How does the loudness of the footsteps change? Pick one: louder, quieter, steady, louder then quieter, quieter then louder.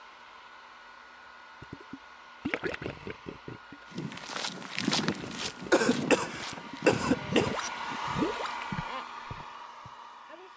quieter then louder.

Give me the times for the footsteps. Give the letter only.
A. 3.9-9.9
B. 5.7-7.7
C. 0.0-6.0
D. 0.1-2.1
A.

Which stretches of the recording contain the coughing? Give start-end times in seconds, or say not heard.
5.7-7.7.